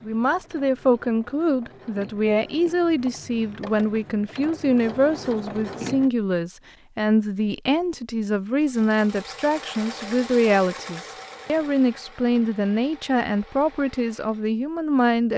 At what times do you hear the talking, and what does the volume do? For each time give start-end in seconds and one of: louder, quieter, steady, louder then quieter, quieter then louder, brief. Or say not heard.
0.0-15.3 steady.